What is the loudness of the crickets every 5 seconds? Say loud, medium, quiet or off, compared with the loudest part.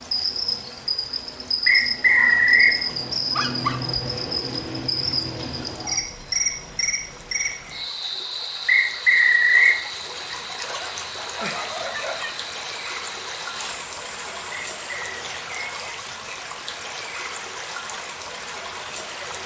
loud, loud, quiet, off.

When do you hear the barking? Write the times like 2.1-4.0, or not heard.
3.3-4.0, 10.7-12.3.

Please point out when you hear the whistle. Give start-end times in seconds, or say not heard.
1.6-2.8, 8.7-9.8, 14.5-15.2.